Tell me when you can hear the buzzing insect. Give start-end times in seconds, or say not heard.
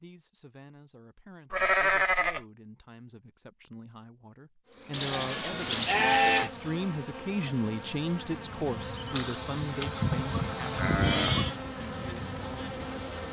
4.7-13.2.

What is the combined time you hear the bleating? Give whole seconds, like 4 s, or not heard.
5 s.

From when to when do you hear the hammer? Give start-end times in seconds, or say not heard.
not heard.